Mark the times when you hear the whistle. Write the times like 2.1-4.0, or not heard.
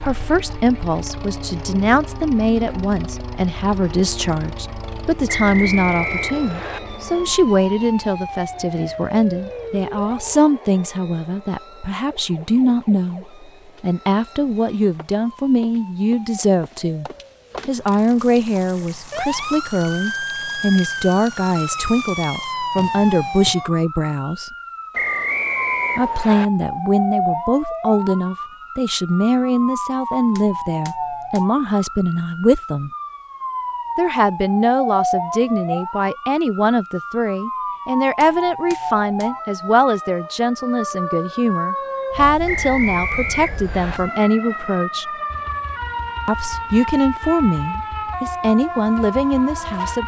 5.2-6.8, 24.9-26.4, 42.5-44.0.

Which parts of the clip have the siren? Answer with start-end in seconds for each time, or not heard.
0.0-50.0.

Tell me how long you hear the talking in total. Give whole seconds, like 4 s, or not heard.
46 s.